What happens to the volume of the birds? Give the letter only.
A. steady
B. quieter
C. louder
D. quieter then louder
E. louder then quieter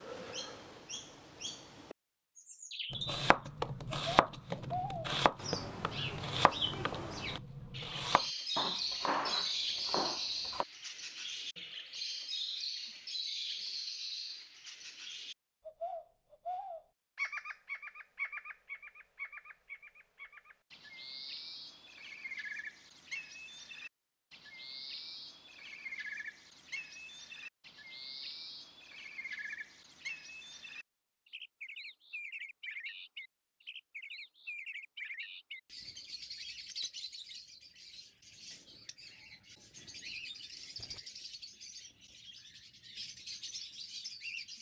B.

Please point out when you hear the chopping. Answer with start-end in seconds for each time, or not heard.
2.9-10.7.